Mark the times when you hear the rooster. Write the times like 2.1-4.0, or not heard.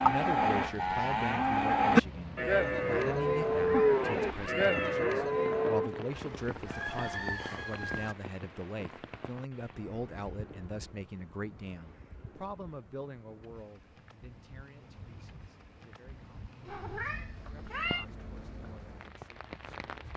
6.2-8.2.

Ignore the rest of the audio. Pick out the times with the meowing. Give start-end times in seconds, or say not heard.
3.6-5.0, 16.6-18.1.